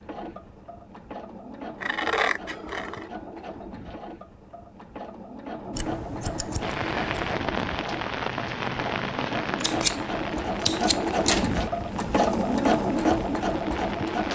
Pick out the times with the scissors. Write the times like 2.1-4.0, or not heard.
1.8-3.1, 5.7-7.2, 9.6-10.0, 10.6-11.5.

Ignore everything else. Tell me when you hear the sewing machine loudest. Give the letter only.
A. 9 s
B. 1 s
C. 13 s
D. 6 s
C.